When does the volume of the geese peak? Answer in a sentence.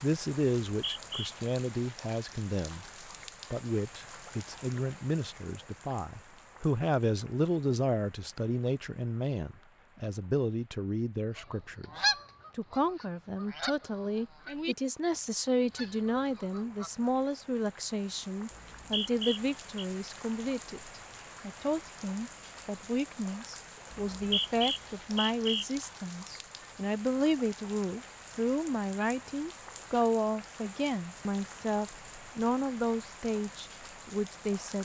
The volume of the geese peaks at 12 seconds.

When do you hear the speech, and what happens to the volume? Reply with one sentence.
The speech can be heard briefly from 0.0 to 2.9 s; and from 3.5 to 34.8 s, at a steady volume.